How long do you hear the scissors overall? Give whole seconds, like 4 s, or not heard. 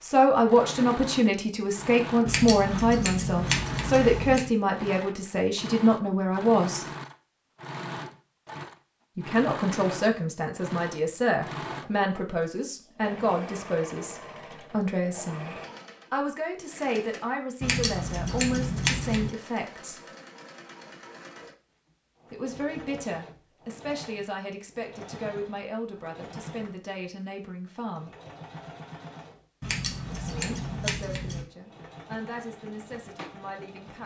6 s.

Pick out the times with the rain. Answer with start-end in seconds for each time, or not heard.
not heard.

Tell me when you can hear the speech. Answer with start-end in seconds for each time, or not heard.
0.0-6.8, 9.2-20.1, 22.3-28.1, 30.1-34.0.